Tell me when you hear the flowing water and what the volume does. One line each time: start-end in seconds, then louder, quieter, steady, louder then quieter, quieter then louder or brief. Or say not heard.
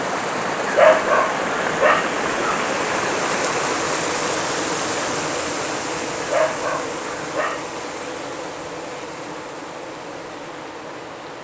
0.0-11.4 quieter.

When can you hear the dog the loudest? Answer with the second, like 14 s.
1 s.